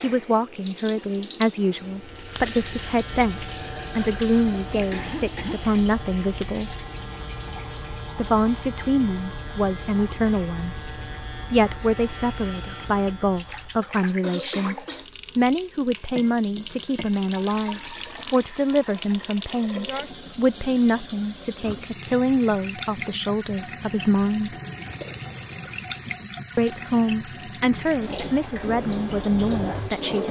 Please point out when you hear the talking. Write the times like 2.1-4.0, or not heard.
0.0-6.8, 8.2-14.8, 15.3-24.6, 26.6-30.2.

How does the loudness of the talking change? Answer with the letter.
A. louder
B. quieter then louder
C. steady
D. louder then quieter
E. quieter
C.